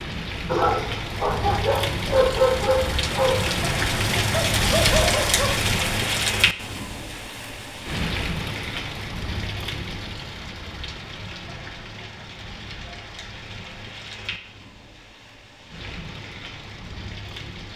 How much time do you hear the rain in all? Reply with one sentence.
You can hear the rain for 18 seconds altogether.